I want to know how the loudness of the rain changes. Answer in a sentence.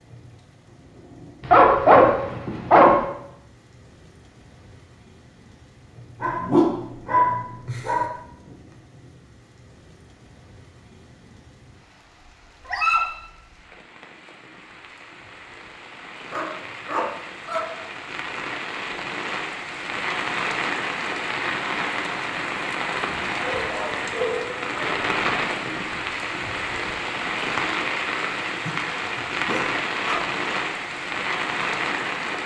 The loudness of the rain goes up.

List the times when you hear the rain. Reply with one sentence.
The rain can be heard from 0.0 to 32.4 s.